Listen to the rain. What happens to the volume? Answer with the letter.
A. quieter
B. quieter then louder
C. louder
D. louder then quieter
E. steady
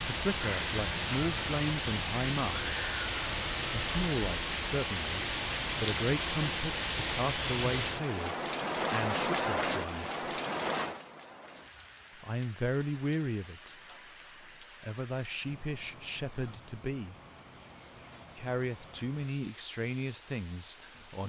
A.